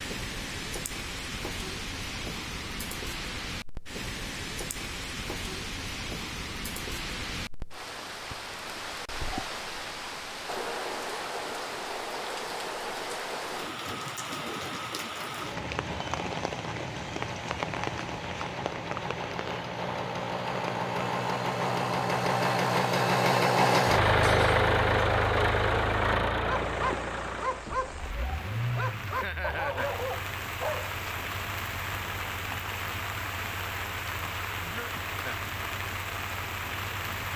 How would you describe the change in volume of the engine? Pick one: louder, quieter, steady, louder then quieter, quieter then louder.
louder then quieter.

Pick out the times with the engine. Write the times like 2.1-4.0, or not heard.
15.4-37.3.